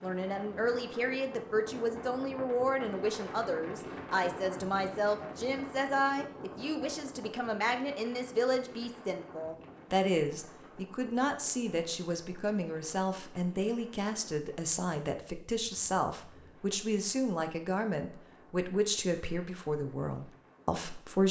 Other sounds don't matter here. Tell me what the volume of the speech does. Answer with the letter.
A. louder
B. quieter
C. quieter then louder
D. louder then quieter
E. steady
E.